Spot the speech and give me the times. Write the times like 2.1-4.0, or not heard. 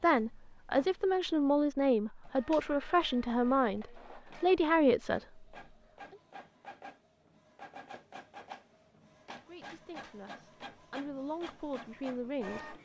0.0-5.5, 9.2-12.7.